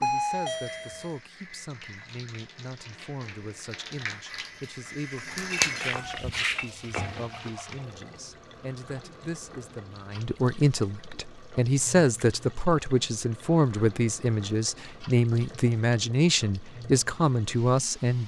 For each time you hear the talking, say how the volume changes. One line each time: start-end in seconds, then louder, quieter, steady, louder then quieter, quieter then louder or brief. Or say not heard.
0.0-18.2 louder.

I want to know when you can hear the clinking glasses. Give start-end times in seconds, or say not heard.
5.3-7.1.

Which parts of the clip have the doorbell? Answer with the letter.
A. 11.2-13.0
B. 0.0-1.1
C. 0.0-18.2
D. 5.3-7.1
B.